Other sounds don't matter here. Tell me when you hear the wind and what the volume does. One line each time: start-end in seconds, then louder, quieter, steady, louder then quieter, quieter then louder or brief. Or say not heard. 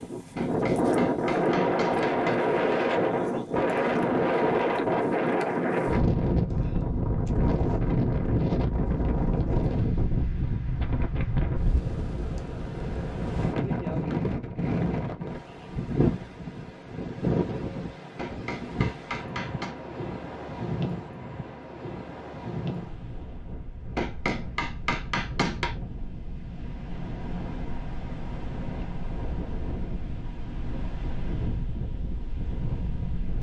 0.0-33.3 quieter.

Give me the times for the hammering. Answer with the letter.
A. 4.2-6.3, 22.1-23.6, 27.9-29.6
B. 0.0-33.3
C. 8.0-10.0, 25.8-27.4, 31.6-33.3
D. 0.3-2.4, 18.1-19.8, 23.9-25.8
D.